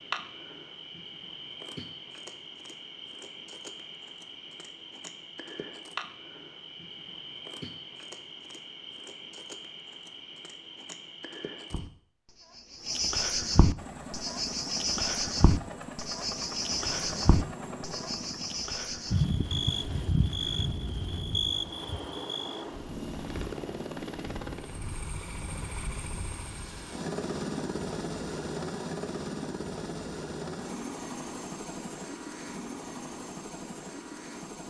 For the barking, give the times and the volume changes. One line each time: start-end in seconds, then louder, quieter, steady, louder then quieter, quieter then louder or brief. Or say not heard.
not heard.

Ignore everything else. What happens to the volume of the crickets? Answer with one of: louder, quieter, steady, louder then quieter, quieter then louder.
louder.